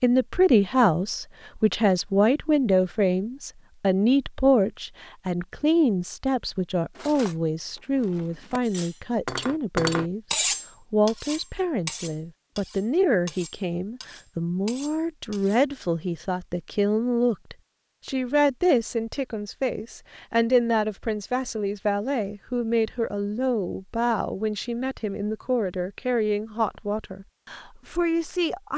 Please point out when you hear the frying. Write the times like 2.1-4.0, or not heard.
not heard.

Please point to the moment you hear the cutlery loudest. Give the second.
10 s.